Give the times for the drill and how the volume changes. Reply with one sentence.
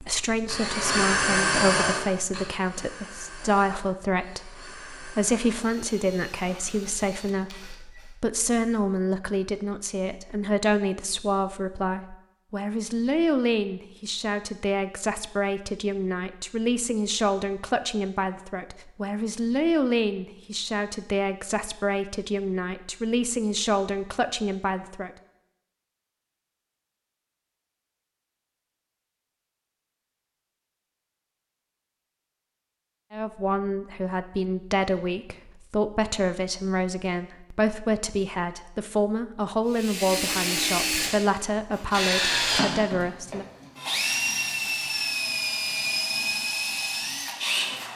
You can hear the drill from 0.0 to 8.2 s, getting quieter; and from 39.7 to 47.9 s, at a steady volume.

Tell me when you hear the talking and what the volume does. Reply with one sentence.
You can hear the talking from 0.0 to 25.1 s, at a steady volume; and from 33.1 to 43.5 s, at a steady volume.